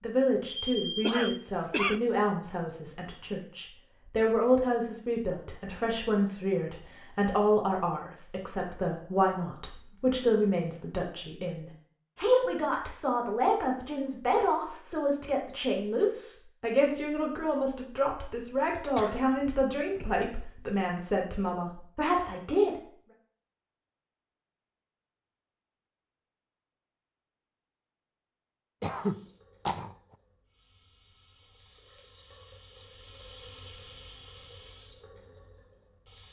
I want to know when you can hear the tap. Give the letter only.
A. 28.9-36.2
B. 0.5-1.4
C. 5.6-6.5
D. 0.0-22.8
A.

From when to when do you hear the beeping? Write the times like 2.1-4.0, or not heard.
0.5-1.4.